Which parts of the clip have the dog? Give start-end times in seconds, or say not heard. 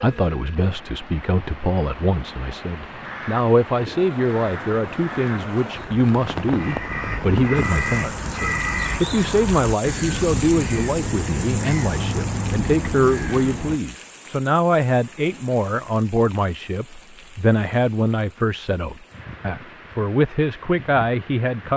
not heard.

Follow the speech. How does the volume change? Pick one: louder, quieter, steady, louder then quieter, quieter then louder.
steady.